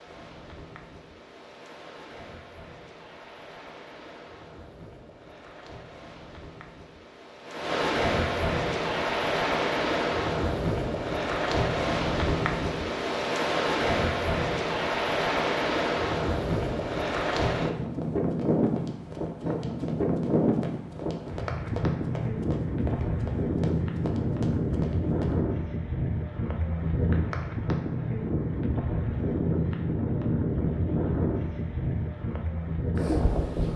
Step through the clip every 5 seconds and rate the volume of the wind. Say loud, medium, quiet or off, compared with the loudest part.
quiet, loud, loud, loud, loud, loud, loud.